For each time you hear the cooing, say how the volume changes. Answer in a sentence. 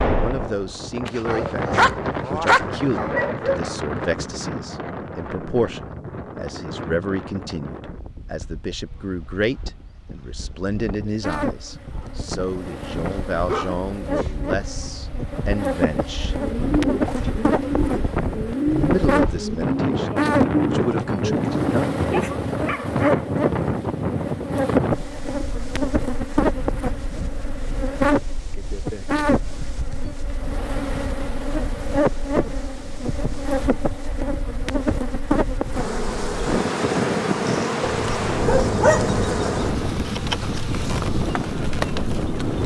The cooing can be heard from 16.3 to 22.5 s, at a steady volume.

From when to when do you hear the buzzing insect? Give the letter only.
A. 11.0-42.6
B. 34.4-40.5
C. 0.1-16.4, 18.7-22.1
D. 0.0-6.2
A.